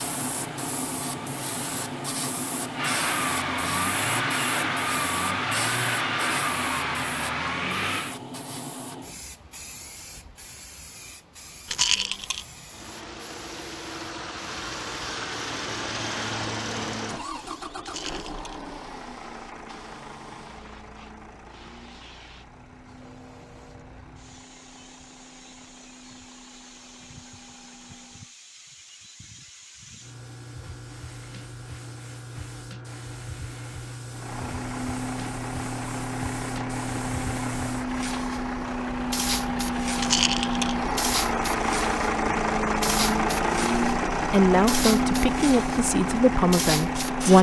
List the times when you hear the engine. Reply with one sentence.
You can hear the engine from 0.0 to 8.2 s, from 12.7 to 28.4 s and from 34.1 to 47.3 s.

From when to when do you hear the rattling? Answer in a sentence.
The rattling can be heard from 11.7 to 12.4 s, from 17.8 to 18.6 s and from 40.0 to 40.8 s.